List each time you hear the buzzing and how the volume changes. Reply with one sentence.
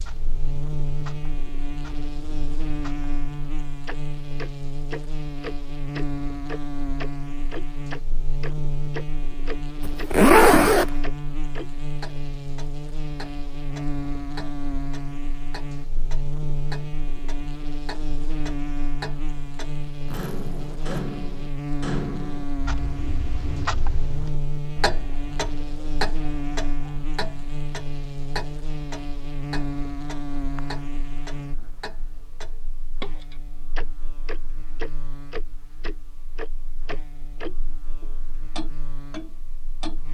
You can hear the buzzing from 0.0 to 40.0 s, getting quieter.